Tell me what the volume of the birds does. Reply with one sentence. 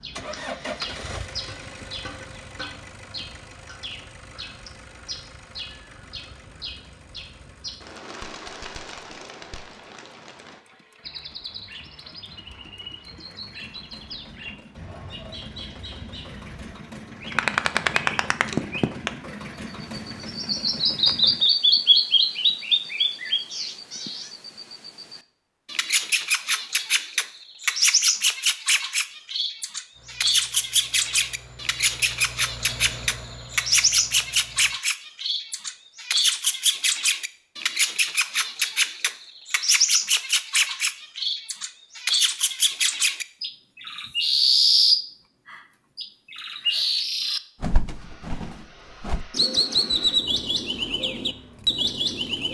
The loudness of the birds goes up.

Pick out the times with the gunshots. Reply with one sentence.
You can hear the gunshots from 17.2 to 19.1 s.